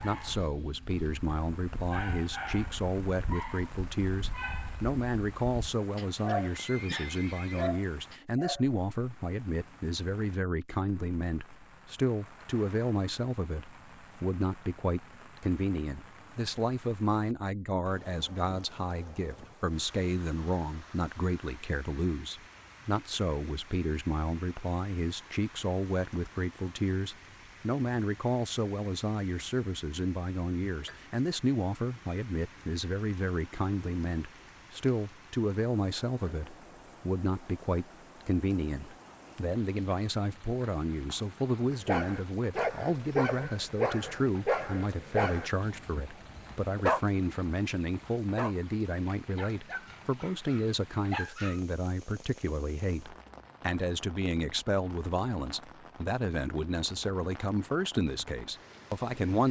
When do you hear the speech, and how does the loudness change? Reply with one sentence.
The speech can be heard from 0.0 to 59.4 s, at a steady volume.